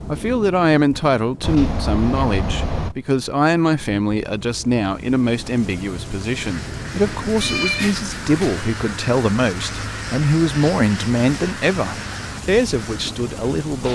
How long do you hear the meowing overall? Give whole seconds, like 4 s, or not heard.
3 s.